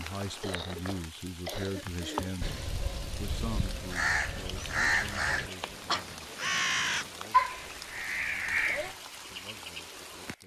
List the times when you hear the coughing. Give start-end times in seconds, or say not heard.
0.4-2.4.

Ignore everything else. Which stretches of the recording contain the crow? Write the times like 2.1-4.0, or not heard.
2.4-8.9.